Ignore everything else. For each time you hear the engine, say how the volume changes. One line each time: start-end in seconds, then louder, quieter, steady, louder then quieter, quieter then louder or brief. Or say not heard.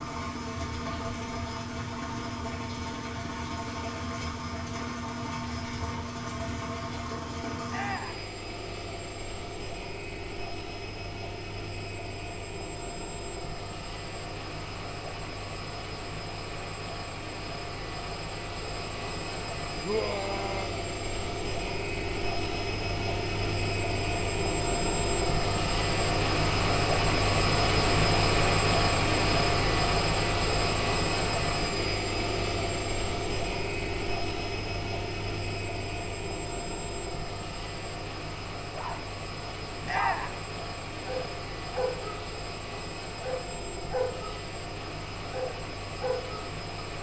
0.0-46.9 louder then quieter.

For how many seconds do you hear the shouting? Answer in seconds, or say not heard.
2 s.